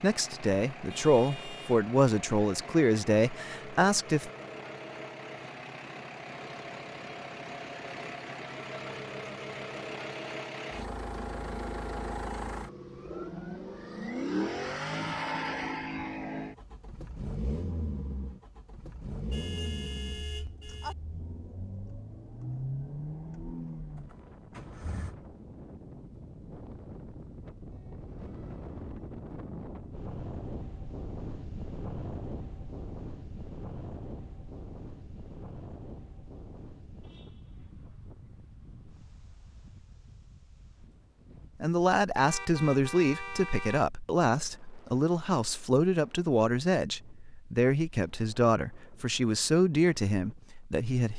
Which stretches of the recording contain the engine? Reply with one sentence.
You can hear the engine from 0.0 to 25.1 s.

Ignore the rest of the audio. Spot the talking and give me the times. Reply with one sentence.
The talking can be heard from 0.0 to 4.3 s and from 41.6 to 51.1 s.